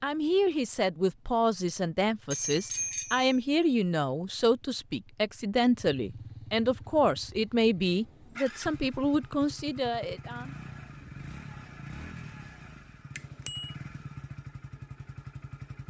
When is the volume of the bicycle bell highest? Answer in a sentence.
The loudest moment of the bicycle bell is at 3 seconds.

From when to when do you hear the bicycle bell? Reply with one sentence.
You can hear the bicycle bell from 2.3 to 3.4 s and from 13.2 to 13.8 s.